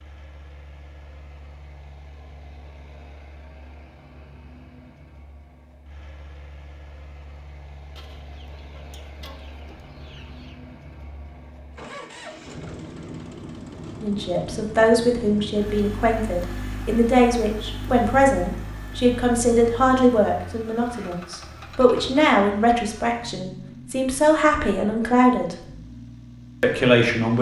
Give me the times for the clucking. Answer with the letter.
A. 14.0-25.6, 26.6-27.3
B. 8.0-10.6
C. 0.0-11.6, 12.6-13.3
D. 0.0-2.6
B.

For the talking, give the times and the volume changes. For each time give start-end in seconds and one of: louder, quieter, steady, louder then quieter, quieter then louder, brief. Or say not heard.
14.0-25.6 steady
26.6-27.3 brief.